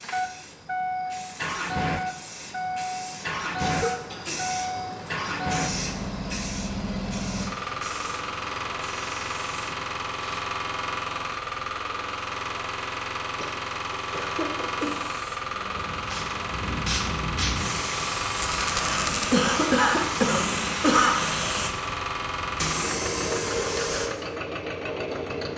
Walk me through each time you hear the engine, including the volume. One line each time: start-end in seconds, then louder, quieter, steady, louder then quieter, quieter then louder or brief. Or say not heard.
0.0-25.5 steady.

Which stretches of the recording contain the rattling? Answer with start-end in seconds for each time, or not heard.
18.3-19.3.